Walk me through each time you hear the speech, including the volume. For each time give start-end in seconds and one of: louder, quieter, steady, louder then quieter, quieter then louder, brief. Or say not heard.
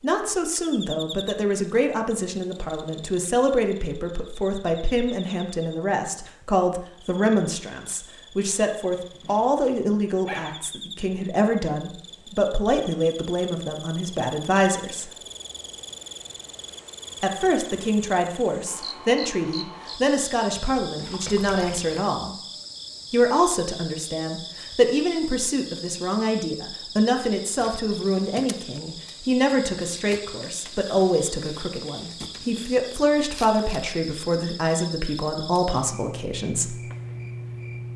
0.0-15.1 steady
17.2-22.4 steady
23.1-36.8 steady.